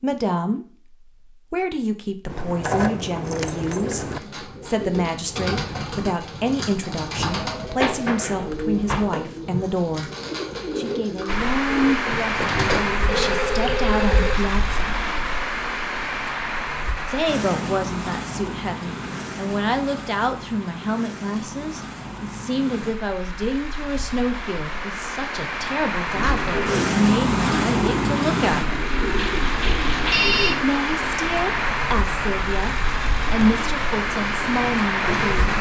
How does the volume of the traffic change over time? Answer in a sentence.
The volume of the traffic goes down, then up.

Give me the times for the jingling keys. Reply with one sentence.
The jingling keys can be heard from 2.2 to 4.2 s.